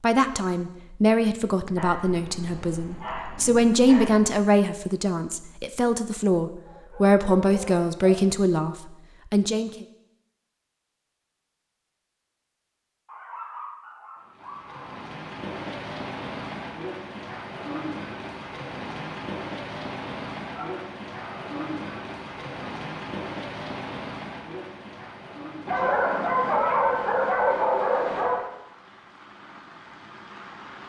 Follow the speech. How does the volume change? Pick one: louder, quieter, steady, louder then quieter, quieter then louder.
steady.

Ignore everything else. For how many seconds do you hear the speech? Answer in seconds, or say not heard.
10 s.